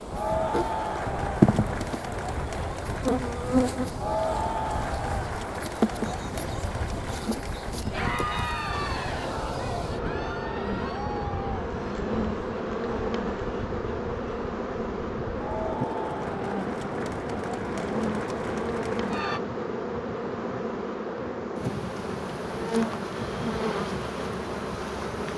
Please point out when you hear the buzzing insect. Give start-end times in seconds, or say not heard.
0.0-25.3.